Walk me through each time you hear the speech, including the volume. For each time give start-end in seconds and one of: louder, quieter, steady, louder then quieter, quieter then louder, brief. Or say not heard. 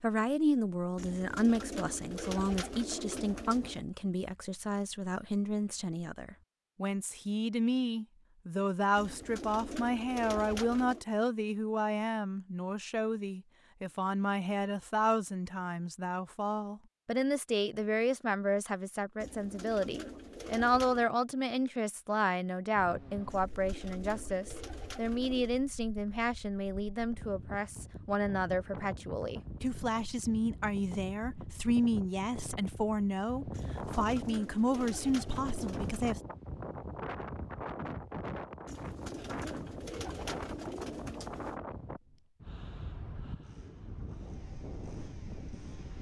0.0-36.2 steady.